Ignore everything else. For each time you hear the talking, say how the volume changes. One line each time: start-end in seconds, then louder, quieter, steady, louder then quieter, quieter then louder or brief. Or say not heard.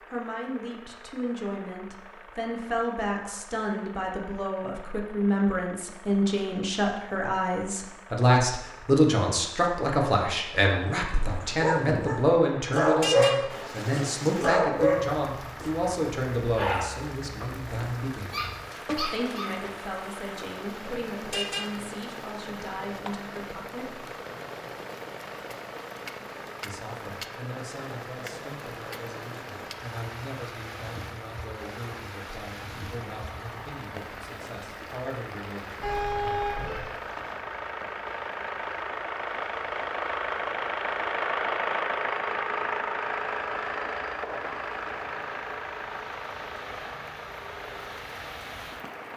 0.1-24.1 louder then quieter
26.6-35.9 steady.